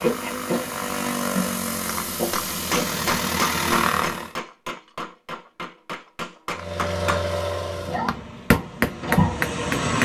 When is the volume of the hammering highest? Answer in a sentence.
The loudest moment of the hammering is at 9 seconds.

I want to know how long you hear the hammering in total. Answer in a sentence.
You can hear the hammering for 7 seconds altogether.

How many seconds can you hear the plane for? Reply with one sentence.
You can hear the plane for 8 seconds altogether.